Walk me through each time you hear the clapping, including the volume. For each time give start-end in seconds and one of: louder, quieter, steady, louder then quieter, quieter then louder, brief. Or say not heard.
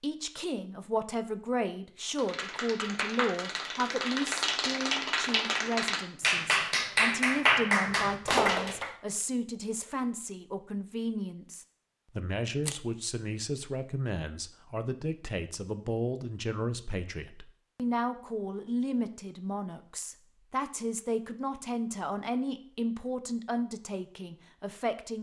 2.1-8.9 louder.